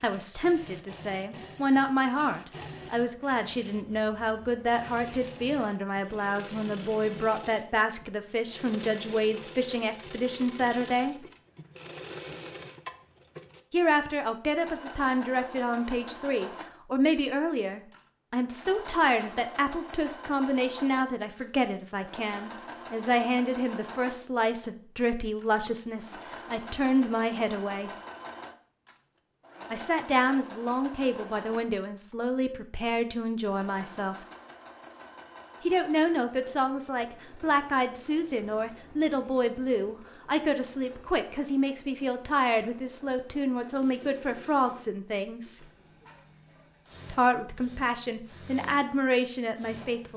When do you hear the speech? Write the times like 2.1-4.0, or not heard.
0.0-11.2, 13.7-27.9, 29.7-34.1, 35.6-45.6, 47.0-50.1.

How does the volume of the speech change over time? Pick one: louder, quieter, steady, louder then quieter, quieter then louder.
steady.